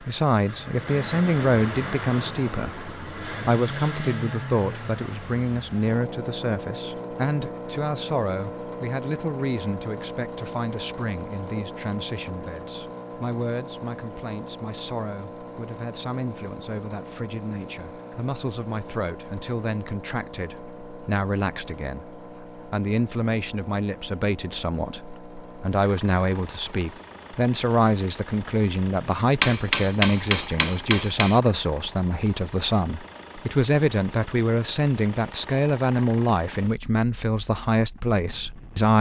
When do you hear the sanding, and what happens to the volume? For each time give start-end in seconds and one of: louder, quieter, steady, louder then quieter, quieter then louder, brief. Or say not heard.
not heard.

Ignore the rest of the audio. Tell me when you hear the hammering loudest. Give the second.
30 s.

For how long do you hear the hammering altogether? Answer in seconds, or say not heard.
2 s.